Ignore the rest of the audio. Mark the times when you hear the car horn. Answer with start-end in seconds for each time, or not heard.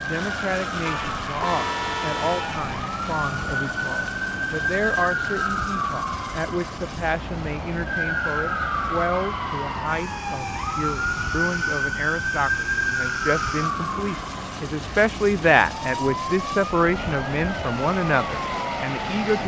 0.8-2.7.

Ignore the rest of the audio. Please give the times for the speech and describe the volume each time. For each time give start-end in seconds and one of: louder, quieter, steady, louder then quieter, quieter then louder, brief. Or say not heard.
0.0-19.4 louder.